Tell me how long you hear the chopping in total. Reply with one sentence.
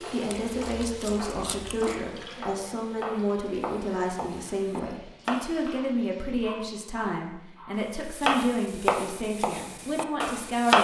You can hear the chopping for 8 seconds altogether.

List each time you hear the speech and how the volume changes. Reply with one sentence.
You can hear the speech from 0.1 to 10.7 s, at a steady volume.